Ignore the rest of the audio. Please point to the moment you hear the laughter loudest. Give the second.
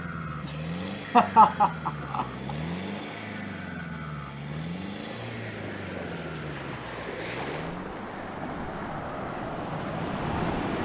1 s.